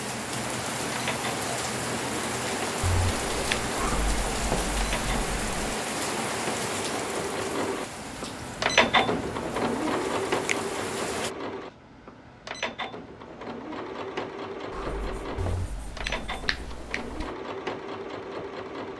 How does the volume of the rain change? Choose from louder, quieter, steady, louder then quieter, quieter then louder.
quieter.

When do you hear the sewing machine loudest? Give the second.
9 s.